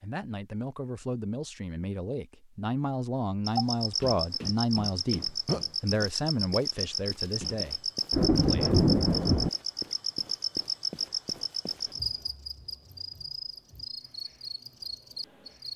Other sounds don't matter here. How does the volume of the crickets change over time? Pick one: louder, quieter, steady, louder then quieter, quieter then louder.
quieter.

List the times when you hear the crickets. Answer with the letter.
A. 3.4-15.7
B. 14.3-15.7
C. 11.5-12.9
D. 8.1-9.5
A.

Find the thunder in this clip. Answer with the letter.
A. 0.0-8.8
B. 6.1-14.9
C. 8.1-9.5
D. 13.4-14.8
C.